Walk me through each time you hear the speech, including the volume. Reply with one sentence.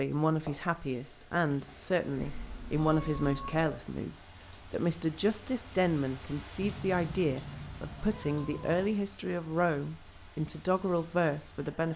You can hear the speech from 0.0 to 11.9 s, at a steady volume.